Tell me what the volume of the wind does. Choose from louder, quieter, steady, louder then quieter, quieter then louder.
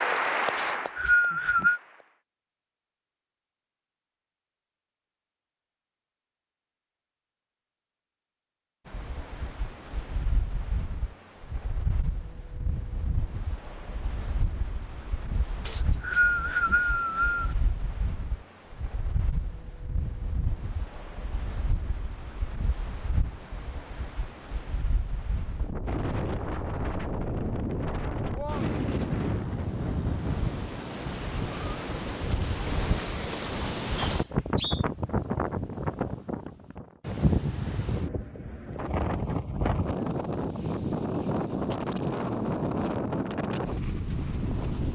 louder.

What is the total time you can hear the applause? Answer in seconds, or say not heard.
2 s.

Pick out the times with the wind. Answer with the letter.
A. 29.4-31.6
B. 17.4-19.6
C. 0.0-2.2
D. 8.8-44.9
D.